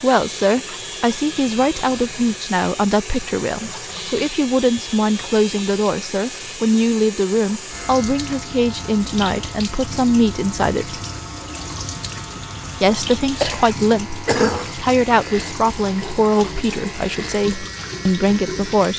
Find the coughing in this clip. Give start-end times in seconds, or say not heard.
13.4-14.8.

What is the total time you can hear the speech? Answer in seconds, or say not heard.
17 s.